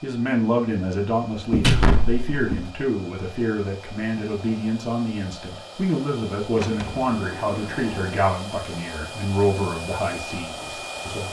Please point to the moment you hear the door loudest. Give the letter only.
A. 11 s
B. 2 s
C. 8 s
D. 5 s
B.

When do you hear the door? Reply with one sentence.
You can hear the door from 1.5 to 2.7 s and from 6.5 to 8.0 s.